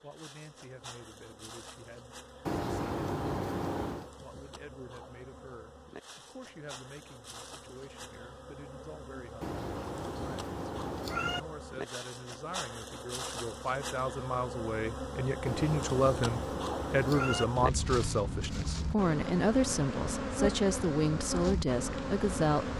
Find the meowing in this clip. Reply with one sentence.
You can hear the meowing from 2.5 to 4.1 s, from 9.4 to 11.4 s and from 15.4 to 17.4 s.